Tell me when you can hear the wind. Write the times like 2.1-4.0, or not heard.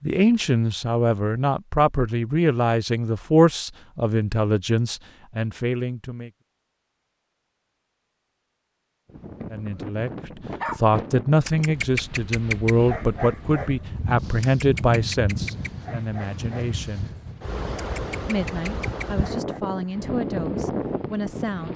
9.1-21.7.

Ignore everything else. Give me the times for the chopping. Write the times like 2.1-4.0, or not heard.
not heard.